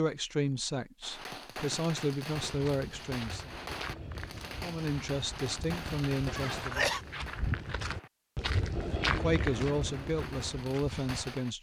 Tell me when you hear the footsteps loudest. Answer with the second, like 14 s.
9 s.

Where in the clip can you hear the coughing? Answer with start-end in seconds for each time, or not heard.
6.2-7.0.